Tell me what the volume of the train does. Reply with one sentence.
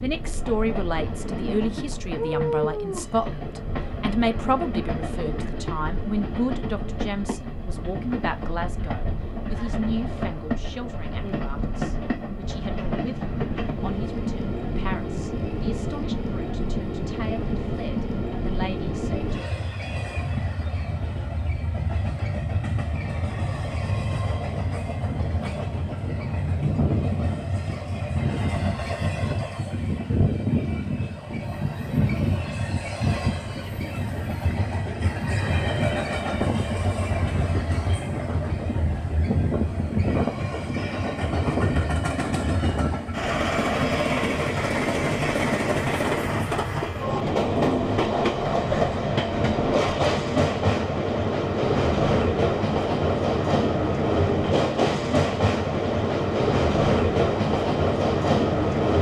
The loudness of the train goes up.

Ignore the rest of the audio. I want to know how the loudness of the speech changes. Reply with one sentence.
The volume of the speech goes down.